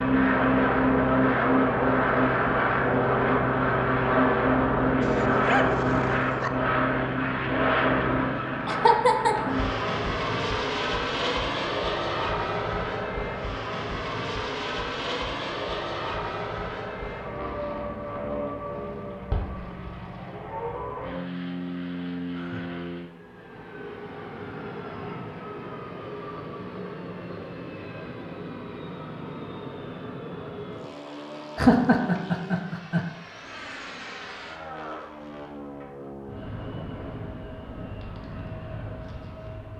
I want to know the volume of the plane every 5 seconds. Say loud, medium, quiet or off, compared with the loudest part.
loud, loud, medium, medium, quiet, quiet, quiet, quiet.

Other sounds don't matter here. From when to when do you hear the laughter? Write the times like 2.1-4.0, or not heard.
8.7-9.3, 31.6-33.0.